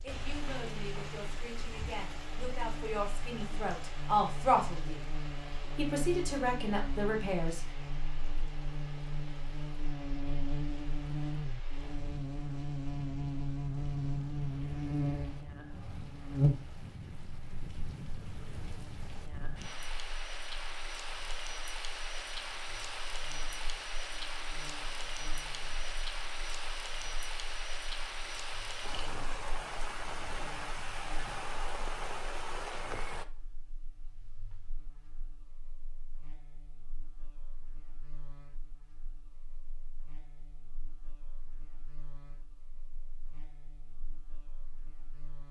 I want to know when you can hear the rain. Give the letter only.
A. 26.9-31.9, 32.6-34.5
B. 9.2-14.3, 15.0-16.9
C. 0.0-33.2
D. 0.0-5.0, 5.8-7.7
C.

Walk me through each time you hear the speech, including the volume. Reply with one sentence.
You can hear the speech from 0.0 to 5.0 s, getting louder; and briefly from 5.8 to 7.7 s.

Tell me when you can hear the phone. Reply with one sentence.
The phone can't be heard in this clip.